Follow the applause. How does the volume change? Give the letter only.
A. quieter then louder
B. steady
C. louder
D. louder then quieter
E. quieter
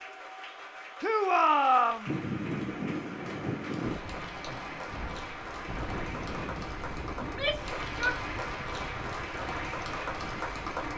C.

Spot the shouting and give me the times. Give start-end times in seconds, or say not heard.
1.0-2.1, 7.2-8.2.